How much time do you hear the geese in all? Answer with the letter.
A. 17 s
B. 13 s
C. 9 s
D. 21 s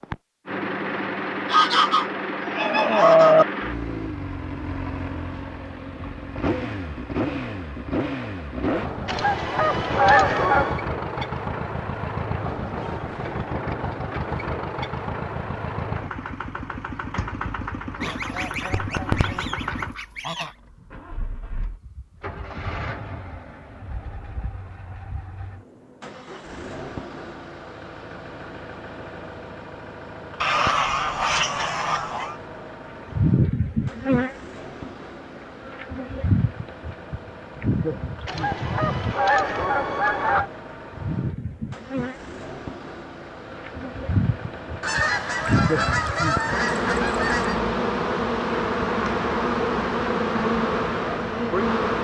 B.